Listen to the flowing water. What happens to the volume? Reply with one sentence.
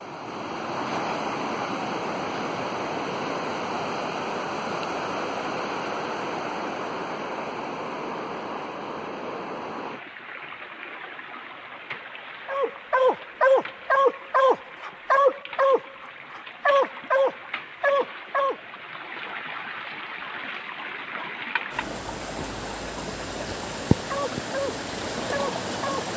The loudness of the flowing water goes down, then up.